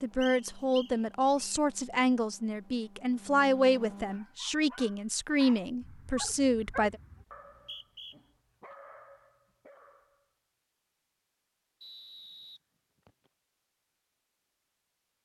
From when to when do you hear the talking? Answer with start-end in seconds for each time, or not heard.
0.0-7.0.